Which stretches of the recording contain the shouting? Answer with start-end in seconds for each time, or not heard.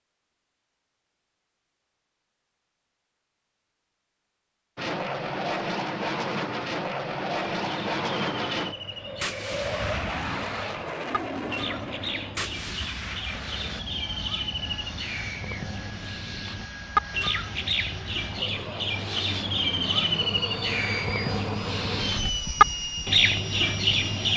not heard.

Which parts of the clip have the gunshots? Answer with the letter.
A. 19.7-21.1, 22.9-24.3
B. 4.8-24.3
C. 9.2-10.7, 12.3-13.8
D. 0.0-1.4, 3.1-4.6
C.